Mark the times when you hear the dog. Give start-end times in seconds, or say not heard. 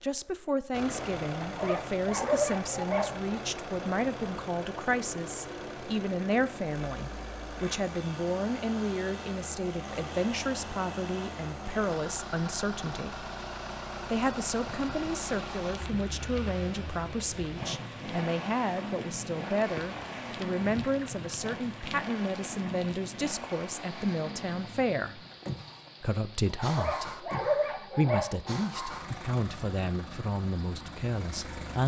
1.4-3.4, 26.6-28.6.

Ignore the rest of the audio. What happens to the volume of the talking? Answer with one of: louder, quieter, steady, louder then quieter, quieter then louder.
steady.